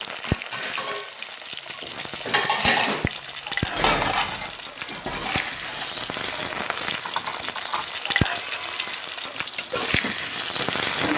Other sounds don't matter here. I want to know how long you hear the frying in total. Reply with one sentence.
You can hear the frying for 11 seconds altogether.